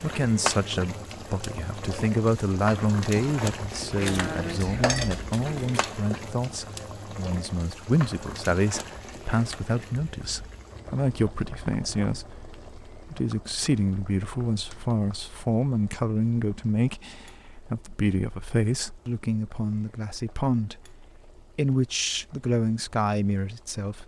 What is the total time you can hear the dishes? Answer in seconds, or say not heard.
2 s.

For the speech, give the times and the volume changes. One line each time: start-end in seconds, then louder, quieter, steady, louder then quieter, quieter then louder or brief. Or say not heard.
0.0-24.0 steady.